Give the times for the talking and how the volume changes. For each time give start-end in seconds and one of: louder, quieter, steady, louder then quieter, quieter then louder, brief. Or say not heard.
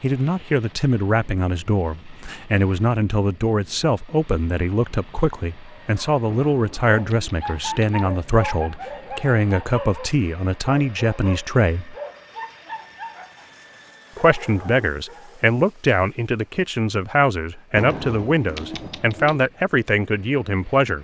0.0-11.9 steady
14.2-20.9 steady.